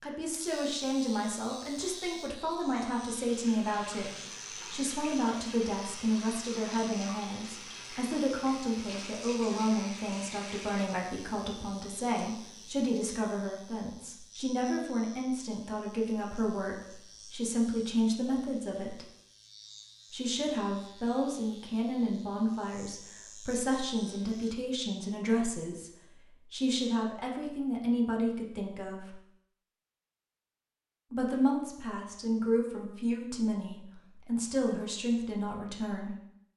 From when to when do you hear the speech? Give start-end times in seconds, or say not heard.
0.0-4.1, 4.7-19.1, 20.1-25.9, 26.5-29.1, 31.1-36.1.